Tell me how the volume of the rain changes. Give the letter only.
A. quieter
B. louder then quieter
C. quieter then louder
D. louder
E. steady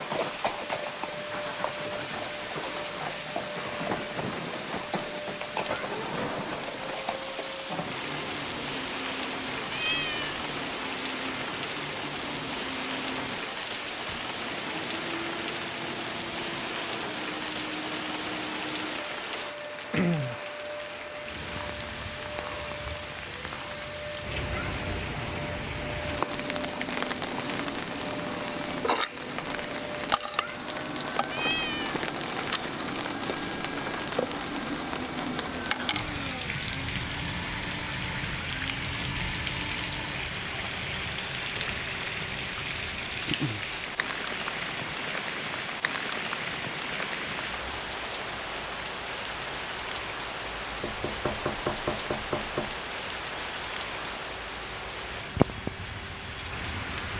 E.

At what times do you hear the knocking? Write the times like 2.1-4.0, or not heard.
50.8-52.8.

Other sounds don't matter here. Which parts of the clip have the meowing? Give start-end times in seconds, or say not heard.
9.7-10.3, 31.2-32.0.